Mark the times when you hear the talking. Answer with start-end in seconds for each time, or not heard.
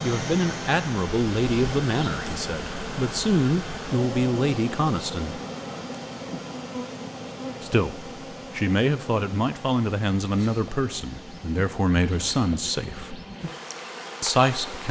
0.0-5.4, 7.6-13.2, 14.2-14.8.